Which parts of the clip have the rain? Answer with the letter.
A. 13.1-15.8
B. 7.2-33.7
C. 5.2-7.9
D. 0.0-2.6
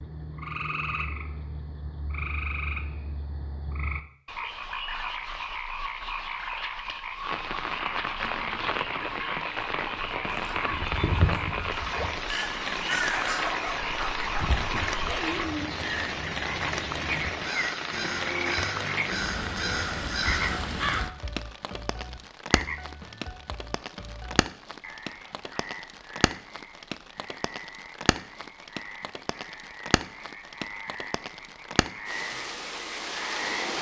B.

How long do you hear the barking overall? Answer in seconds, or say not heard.
3 s.